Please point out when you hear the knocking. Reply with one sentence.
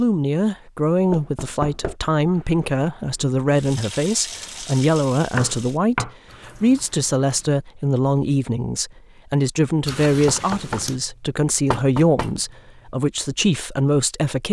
You can hear the knocking from 1.1 to 1.9 s, from 5.3 to 6.2 s and from 10.2 to 12.3 s.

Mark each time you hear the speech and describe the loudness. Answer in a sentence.
You can hear the speech from 0.0 to 14.4 s, at a steady volume.